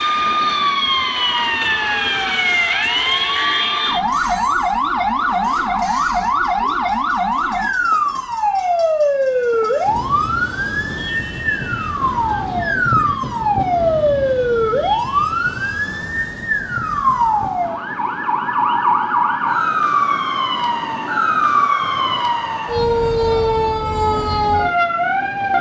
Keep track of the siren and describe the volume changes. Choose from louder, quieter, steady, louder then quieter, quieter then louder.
steady.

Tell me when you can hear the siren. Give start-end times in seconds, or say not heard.
0.0-25.5.